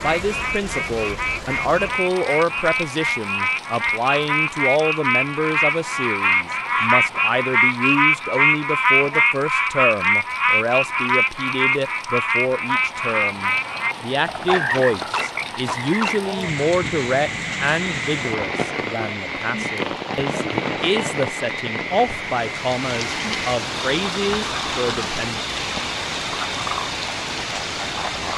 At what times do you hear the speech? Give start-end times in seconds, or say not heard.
0.0-25.4.